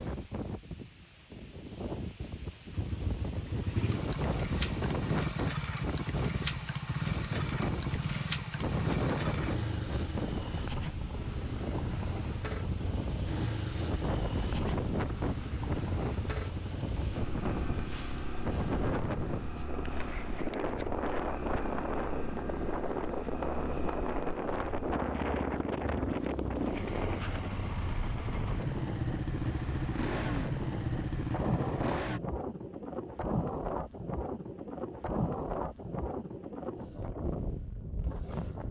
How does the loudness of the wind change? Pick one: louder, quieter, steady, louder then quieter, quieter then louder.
steady.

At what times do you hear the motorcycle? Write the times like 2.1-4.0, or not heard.
2.7-32.2.